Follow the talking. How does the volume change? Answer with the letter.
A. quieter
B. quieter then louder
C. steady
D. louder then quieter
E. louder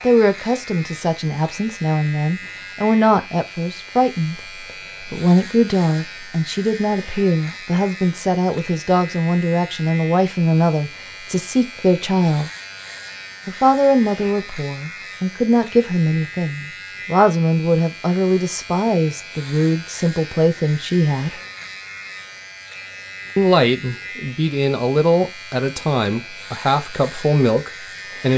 C.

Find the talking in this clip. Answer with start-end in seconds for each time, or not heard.
0.0-12.5, 13.4-21.4, 23.4-28.3.